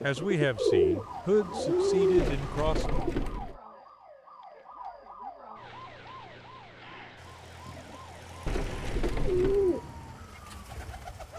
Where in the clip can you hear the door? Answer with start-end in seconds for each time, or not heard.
2.1-3.6, 8.4-9.7.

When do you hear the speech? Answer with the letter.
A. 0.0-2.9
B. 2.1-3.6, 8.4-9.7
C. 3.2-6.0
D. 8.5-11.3
A.